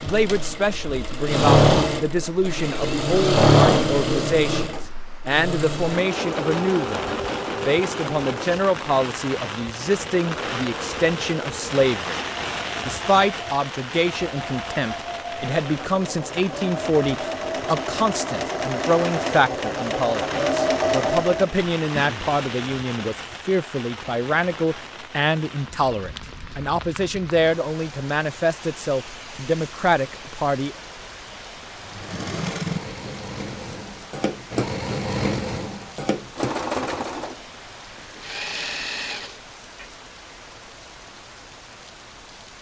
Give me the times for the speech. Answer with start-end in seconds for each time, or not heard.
0.0-12.2, 12.8-30.8.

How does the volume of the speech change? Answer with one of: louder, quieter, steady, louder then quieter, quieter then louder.
steady.